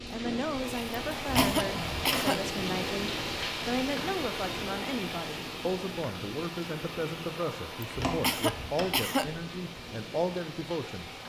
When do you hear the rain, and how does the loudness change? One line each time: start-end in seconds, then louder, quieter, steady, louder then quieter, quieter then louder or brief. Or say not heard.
0.0-11.2 quieter.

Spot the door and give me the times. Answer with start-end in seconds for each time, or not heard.
1.2-2.3, 8.0-8.9.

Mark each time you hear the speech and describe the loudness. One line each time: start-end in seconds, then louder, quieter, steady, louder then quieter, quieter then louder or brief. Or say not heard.
0.1-11.1 steady.